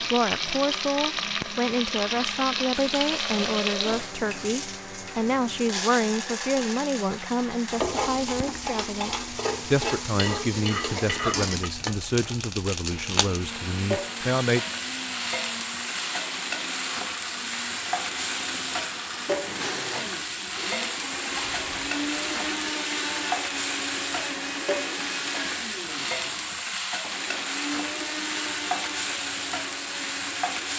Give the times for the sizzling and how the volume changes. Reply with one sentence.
The sizzling can be heard from 0.0 to 30.7 s, at a steady volume.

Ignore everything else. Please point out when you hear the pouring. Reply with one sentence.
The pouring can be heard from 2.8 to 4.2 s.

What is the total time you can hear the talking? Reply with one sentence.
The talking can be heard for 15 seconds in total.